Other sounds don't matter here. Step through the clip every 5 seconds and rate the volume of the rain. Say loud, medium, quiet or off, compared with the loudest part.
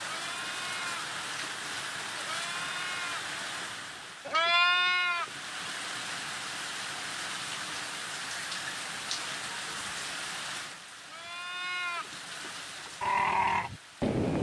loud, loud, medium.